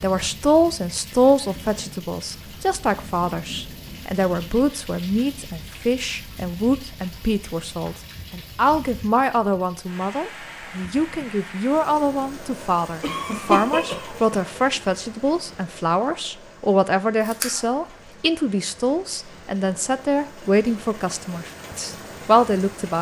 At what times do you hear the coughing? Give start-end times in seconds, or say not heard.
13.0-14.4.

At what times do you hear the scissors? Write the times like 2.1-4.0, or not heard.
17.2-17.9.